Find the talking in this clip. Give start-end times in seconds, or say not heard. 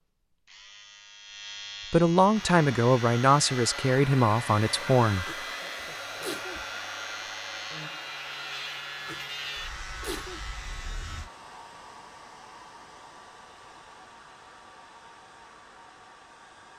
1.9-5.2.